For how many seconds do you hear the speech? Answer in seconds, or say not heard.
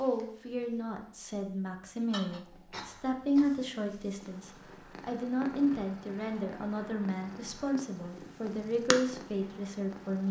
10 s.